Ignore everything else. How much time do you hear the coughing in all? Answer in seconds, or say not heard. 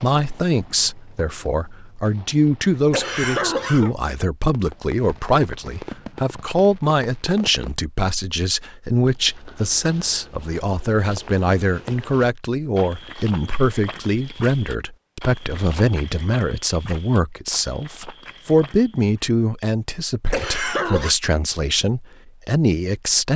2 s.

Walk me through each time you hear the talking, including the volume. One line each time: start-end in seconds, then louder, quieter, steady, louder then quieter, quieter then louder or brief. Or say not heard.
0.0-23.3 steady.